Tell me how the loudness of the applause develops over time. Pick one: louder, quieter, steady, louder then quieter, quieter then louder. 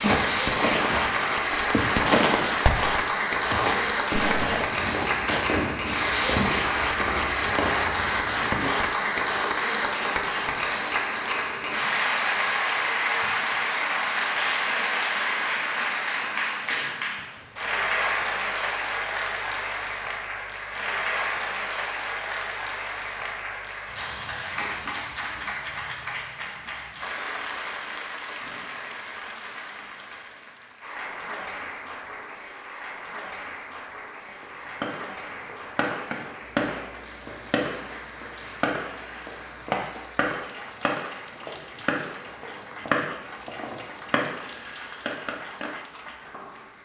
quieter.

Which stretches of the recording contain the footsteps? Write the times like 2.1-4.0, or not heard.
0.0-5.5.